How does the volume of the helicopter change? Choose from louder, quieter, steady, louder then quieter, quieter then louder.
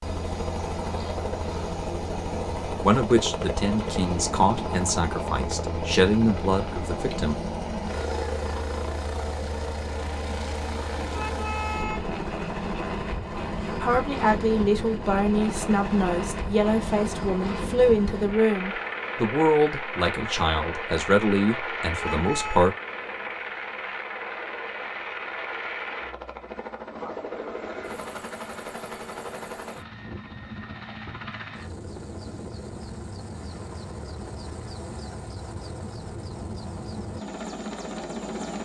quieter.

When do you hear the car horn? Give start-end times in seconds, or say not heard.
11.1-12.2, 21.9-22.7.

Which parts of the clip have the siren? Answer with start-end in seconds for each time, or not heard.
not heard.